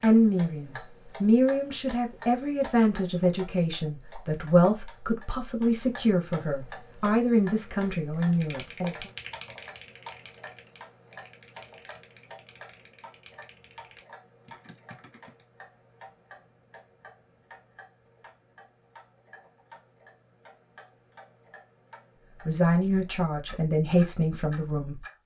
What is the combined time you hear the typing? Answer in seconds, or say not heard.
7 s.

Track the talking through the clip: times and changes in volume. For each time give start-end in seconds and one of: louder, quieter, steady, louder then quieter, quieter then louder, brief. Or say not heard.
0.0-9.1 steady
22.4-25.0 brief.